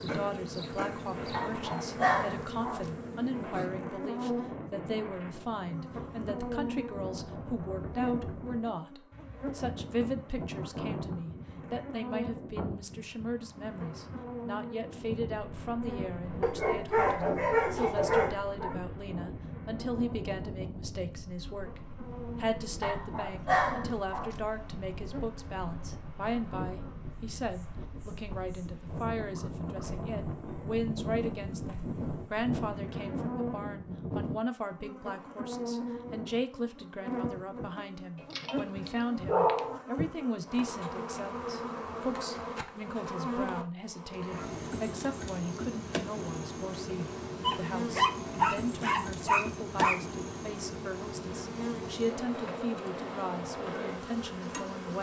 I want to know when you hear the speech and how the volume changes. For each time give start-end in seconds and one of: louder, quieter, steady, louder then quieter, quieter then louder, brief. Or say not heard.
0.0-54.9 steady.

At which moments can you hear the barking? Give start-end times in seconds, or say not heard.
1.3-2.9, 16.4-18.8, 22.8-24.4, 38.3-39.8, 47.4-50.0.